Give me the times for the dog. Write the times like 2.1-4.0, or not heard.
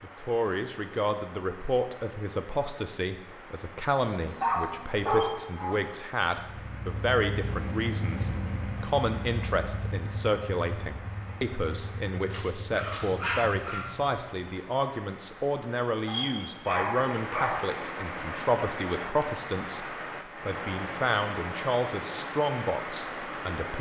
4.0-5.8, 12.3-13.8, 16.1-17.6.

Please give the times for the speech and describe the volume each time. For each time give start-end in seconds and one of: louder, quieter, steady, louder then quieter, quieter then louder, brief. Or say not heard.
0.0-23.7 steady.